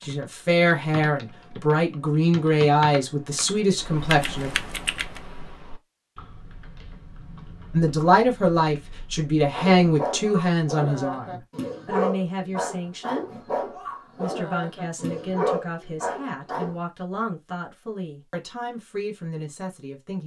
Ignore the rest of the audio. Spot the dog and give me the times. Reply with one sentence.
The dog can be heard from 9.5 to 16.8 s.